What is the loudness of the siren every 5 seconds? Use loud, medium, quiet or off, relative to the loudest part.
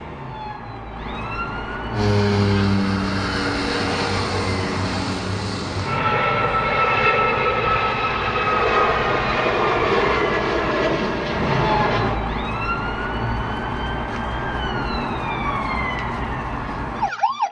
medium, medium, loud, loud.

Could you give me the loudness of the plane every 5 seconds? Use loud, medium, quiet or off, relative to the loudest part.
loud, loud, loud, off.